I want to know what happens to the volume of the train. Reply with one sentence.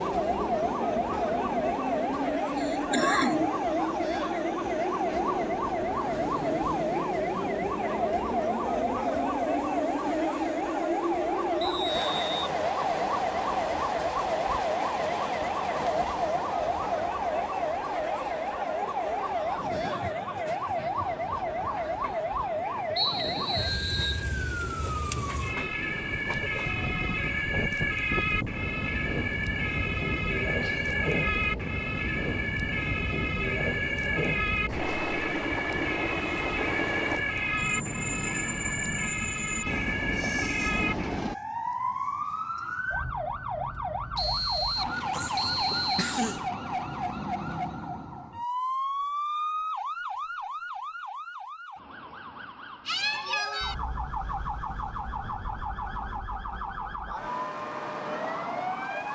The loudness of the train goes down, then up.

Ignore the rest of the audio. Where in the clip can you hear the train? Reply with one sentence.
The train can be heard from 0.0 to 41.4 s.